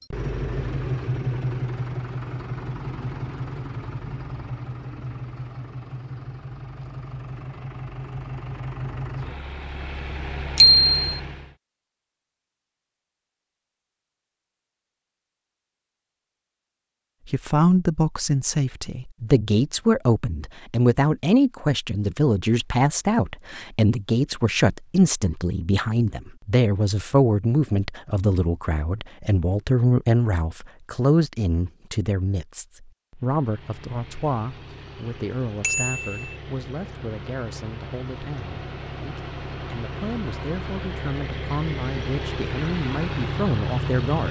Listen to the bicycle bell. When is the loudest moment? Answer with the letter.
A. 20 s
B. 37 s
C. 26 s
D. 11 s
D.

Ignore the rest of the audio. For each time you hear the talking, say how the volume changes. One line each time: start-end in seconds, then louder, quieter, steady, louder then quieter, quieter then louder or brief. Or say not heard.
17.2-44.2 quieter.